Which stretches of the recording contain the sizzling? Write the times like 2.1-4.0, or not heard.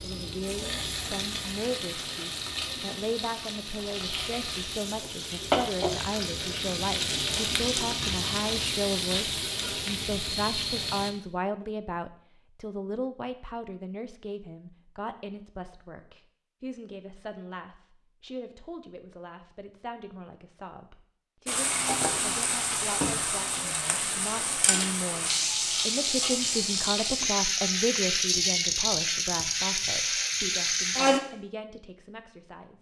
0.0-11.1, 21.4-31.2.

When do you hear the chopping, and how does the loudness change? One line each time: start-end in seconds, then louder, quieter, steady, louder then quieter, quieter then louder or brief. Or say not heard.
not heard.